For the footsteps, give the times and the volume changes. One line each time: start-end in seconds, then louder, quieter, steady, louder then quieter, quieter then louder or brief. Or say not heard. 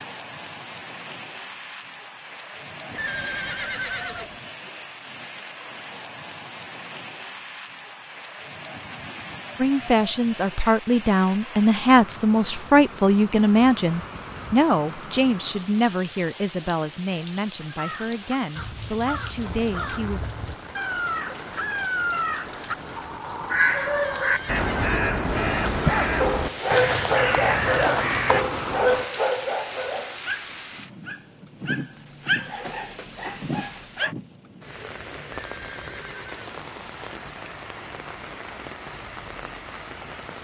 not heard.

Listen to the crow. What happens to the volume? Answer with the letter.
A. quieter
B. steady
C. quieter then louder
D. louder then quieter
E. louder
E.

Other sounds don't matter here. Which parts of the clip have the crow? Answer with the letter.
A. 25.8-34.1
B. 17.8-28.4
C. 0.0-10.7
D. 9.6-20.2
B.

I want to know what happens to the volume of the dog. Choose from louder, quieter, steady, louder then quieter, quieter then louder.
quieter then louder.